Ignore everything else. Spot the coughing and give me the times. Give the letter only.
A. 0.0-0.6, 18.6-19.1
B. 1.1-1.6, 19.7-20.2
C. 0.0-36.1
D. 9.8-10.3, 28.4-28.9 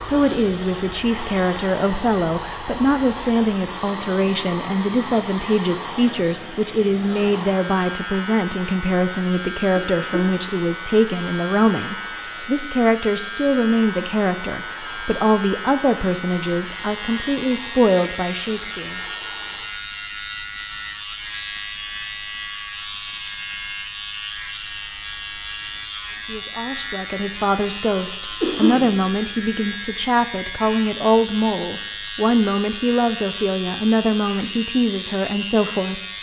D.